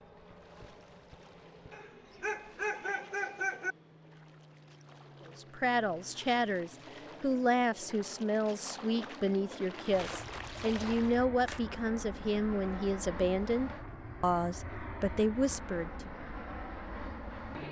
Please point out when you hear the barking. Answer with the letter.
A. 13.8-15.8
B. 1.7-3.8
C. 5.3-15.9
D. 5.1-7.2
B.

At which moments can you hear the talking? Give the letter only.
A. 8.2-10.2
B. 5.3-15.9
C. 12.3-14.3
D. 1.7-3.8
B.